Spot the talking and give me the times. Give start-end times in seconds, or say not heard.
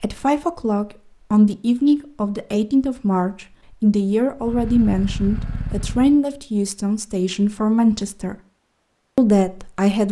0.0-8.3, 9.2-10.0.